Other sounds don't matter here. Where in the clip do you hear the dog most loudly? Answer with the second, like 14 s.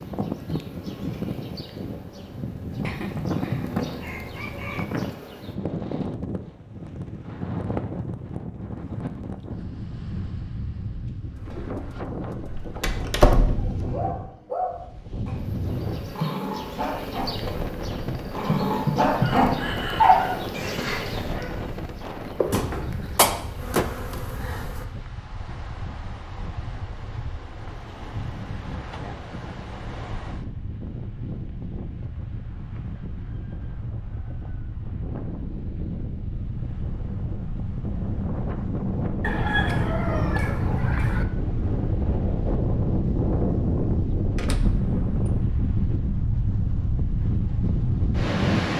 20 s.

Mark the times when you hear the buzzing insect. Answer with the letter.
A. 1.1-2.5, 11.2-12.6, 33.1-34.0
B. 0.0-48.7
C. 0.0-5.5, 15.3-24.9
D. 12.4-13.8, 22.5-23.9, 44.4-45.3
C.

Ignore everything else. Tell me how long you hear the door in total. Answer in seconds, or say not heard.
4 s.